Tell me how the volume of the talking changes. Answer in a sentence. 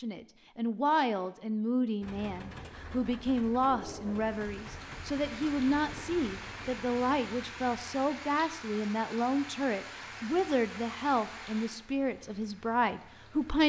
The volume of the talking stays about the same.